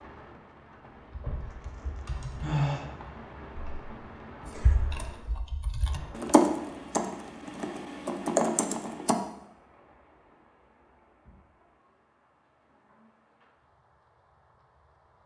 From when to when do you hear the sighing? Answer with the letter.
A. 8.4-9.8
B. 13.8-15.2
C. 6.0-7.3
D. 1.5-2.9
D.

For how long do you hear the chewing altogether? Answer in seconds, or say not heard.
not heard.